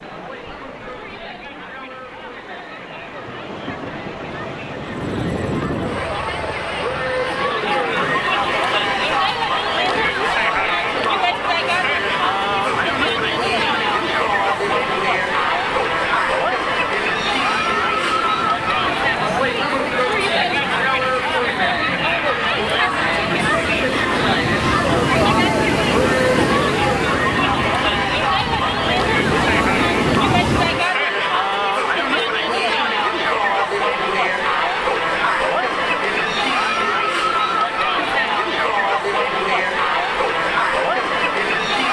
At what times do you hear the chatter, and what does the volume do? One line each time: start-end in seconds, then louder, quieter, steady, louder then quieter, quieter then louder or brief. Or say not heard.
0.0-41.8 louder.